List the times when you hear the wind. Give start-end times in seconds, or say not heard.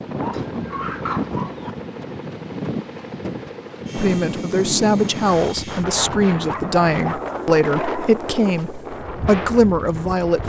0.0-10.4.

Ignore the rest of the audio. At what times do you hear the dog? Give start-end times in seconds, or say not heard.
0.2-1.7, 5.8-8.7.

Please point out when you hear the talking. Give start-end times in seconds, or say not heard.
4.0-10.4.